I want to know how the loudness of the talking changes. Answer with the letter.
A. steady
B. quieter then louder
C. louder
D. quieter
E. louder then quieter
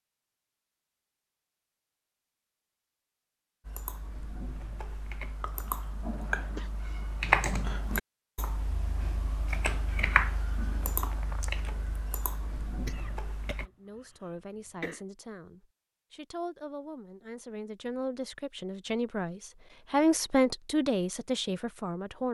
C.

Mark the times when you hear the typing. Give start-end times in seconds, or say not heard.
3.6-13.7.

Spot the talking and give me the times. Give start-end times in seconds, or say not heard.
13.7-22.3.